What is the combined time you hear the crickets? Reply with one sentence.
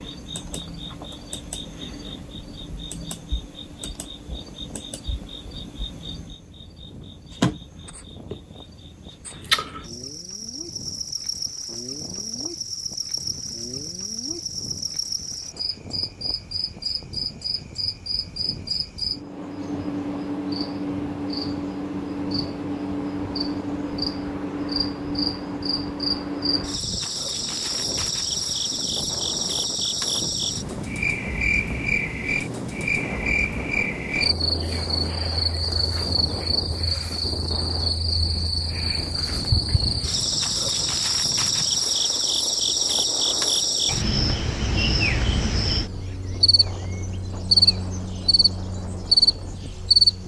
The crickets can be heard for 50 seconds in total.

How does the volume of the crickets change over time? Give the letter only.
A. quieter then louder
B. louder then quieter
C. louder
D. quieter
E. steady
C.